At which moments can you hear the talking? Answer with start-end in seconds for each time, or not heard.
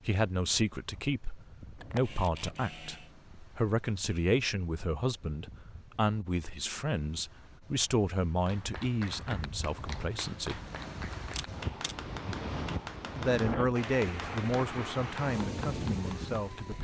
0.1-10.6, 13.2-16.7.